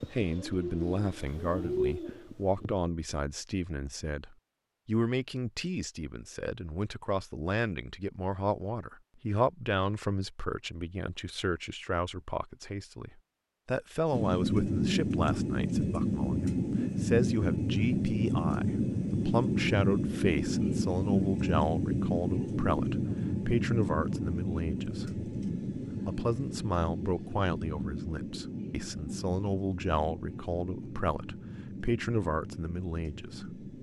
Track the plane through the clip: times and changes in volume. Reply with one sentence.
The plane can be heard from 14.1 to 33.7 s, getting quieter.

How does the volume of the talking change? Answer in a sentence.
The volume of the talking stays about the same.